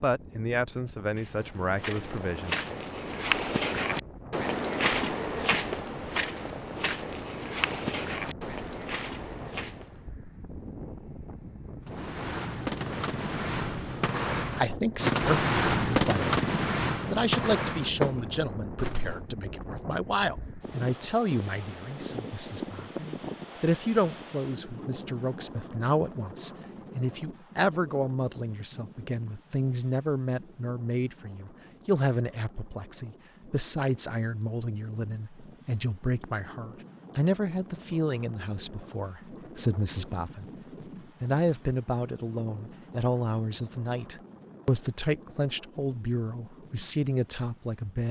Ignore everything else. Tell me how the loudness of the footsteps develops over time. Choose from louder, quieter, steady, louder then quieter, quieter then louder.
louder then quieter.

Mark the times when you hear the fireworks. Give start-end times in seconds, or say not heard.
11.8-19.2.